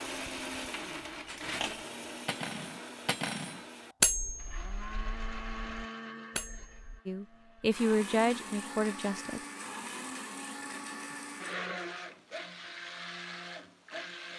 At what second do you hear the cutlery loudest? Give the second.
4 s.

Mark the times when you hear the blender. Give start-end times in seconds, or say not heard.
0.0-14.3.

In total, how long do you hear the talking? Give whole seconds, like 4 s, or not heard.
2 s.